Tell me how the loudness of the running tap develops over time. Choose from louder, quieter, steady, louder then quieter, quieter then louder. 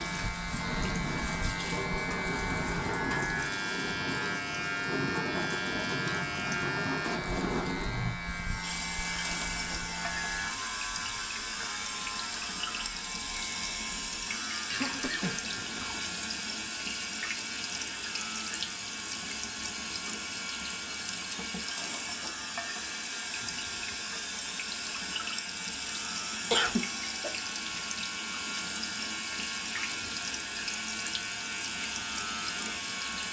steady.